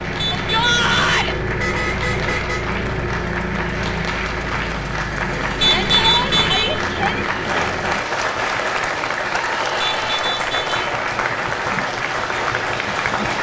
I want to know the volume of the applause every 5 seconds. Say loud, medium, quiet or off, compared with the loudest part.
medium, loud, loud.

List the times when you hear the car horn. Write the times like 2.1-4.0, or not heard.
0.1-2.6, 5.6-6.8, 9.8-10.8.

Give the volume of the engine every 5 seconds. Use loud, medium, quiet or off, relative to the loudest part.
loud, loud, medium.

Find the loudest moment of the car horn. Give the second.
6 s.